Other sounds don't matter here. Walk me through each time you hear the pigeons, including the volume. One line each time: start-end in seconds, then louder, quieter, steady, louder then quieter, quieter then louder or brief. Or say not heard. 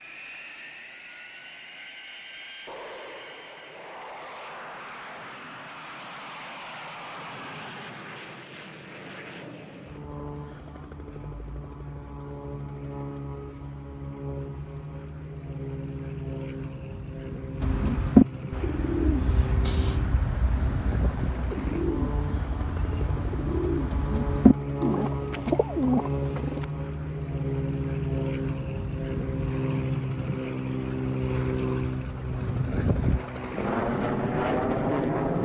17.6-26.6 quieter then louder.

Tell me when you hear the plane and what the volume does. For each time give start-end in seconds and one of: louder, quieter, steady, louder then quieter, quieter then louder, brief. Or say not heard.
0.0-35.4 louder.